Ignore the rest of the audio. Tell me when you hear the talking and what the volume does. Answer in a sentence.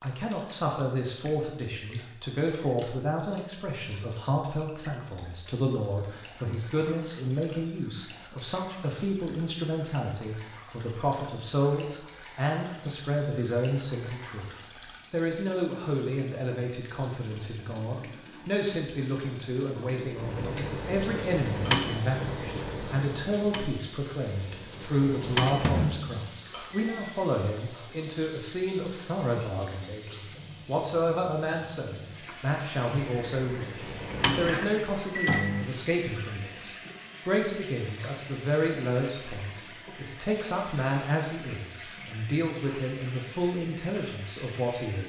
The talking can be heard from 0.0 to 45.0 s, at a steady volume.